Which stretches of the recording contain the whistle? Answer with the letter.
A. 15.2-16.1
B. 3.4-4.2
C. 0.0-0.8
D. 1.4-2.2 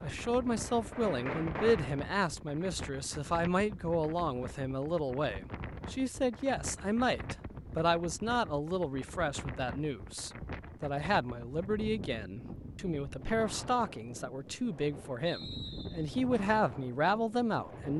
A.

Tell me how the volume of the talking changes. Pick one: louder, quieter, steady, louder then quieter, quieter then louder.
steady.